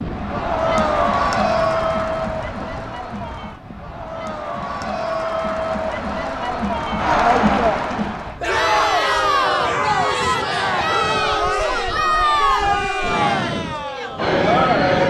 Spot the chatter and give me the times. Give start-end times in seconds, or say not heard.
0.1-15.0.